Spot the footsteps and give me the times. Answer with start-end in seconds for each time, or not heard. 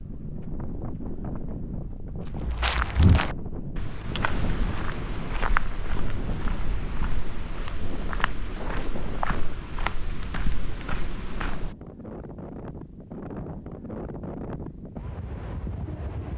2.2-11.8.